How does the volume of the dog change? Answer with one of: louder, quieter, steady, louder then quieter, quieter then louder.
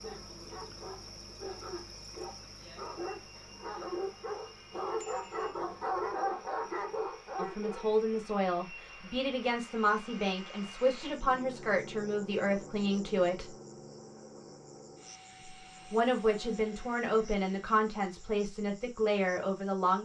louder.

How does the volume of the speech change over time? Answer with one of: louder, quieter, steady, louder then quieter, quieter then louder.
steady.